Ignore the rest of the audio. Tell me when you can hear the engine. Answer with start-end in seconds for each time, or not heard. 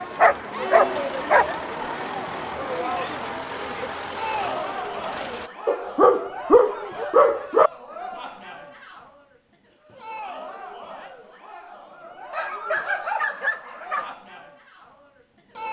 0.0-5.5.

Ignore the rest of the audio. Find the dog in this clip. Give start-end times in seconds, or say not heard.
0.1-1.4, 5.7-7.7, 12.3-14.2.